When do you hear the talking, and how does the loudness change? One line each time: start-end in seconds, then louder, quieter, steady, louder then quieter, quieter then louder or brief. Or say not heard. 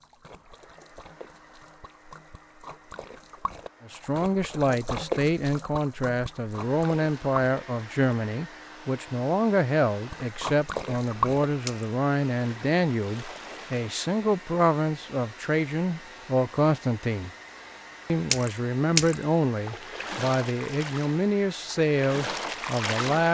3.9-17.3 steady
18.1-23.2 steady.